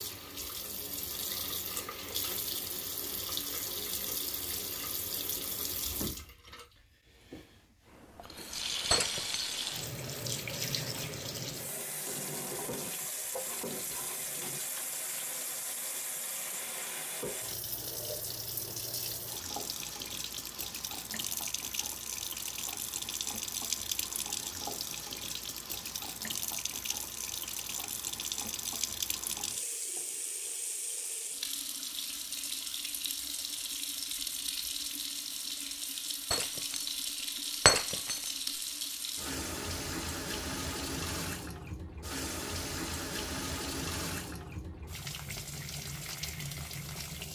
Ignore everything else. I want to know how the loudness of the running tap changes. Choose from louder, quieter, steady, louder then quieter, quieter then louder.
steady.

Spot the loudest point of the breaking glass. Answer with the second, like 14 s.
38 s.